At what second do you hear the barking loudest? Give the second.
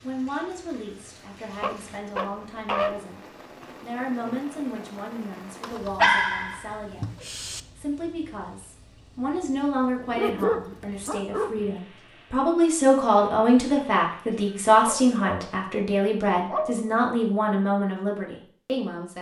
6 s.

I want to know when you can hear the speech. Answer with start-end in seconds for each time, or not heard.
0.0-19.1.